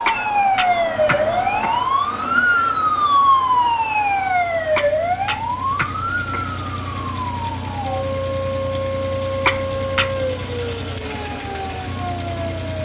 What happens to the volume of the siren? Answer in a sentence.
The loudness of the siren goes down.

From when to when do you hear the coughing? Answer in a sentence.
You can hear the coughing from 0.1 to 1.8 s, from 4.8 to 6.5 s and from 9.4 to 10.1 s.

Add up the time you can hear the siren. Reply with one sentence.
You can hear the siren for 13 seconds altogether.